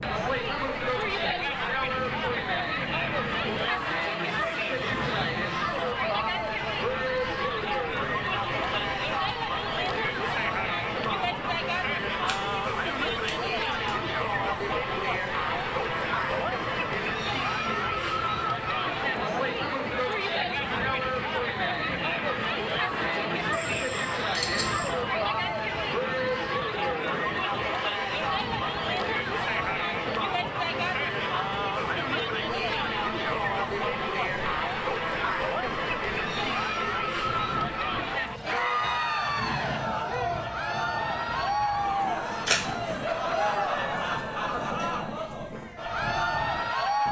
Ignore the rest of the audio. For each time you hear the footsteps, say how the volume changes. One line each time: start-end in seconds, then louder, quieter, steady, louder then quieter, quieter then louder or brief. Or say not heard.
not heard.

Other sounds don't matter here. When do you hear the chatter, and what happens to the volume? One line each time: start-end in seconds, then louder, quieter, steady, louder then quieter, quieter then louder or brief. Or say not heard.
0.0-47.0 steady.